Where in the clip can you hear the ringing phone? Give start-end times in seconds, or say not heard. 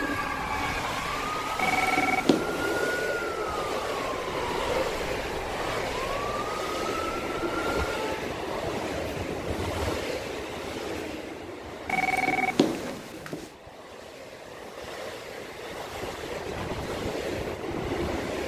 1.6-2.5, 11.8-13.5.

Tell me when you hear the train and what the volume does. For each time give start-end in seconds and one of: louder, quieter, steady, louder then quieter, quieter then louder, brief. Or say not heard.
0.0-18.4 quieter then louder.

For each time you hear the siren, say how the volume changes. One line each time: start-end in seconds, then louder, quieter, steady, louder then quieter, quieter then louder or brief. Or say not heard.
0.0-8.2 steady.